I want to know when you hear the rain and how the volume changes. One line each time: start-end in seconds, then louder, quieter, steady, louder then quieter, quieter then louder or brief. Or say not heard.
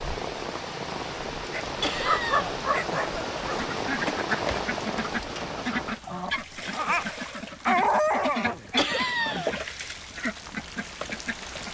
0.0-11.6 quieter then louder.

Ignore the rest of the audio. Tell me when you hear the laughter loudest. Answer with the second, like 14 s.
9 s.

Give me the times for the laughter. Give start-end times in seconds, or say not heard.
1.8-2.6, 8.8-9.6.